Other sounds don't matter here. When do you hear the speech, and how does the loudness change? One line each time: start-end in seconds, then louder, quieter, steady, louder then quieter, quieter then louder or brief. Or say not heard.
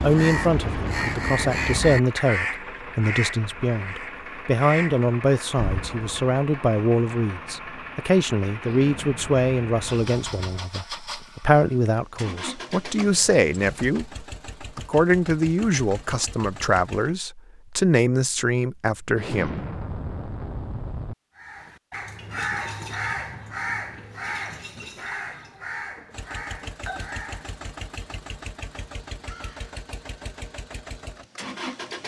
0.0-19.6 steady.